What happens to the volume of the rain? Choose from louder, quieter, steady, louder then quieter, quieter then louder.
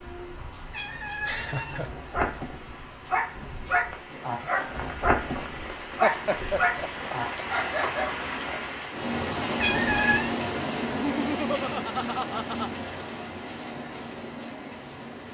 louder then quieter.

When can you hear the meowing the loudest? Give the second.
10 s.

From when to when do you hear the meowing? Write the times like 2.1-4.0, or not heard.
0.7-2.0, 9.6-10.3.